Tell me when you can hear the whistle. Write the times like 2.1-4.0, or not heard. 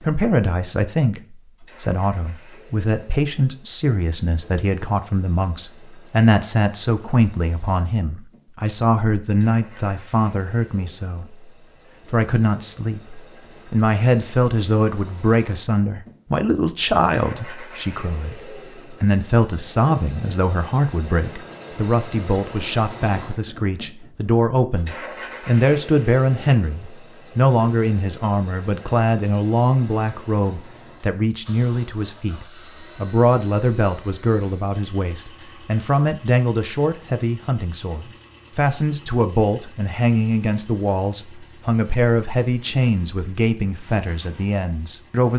not heard.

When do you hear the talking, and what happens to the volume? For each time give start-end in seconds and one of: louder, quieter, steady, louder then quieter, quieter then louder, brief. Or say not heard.
0.0-45.3 steady.